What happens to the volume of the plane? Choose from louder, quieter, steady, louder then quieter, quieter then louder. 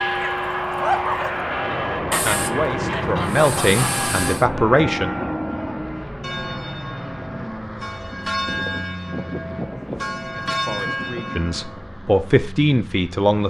quieter.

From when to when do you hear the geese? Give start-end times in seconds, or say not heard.
2.1-4.5.